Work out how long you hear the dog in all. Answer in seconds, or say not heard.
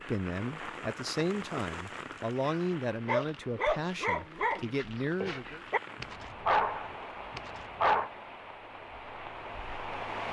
5 s.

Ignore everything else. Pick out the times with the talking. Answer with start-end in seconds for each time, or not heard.
0.1-5.6.